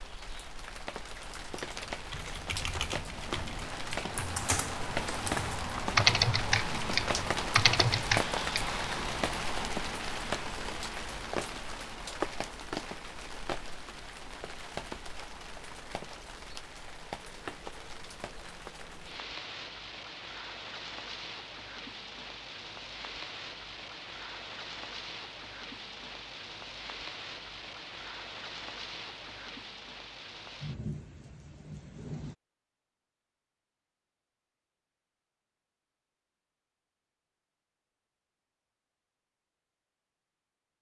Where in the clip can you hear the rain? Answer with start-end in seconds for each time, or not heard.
0.0-32.4.